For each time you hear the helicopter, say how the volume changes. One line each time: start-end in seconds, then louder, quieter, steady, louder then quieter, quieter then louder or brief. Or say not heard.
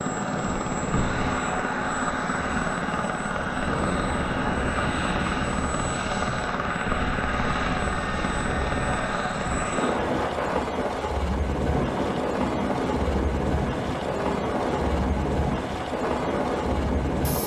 0.0-17.4 steady.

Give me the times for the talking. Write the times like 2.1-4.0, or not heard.
not heard.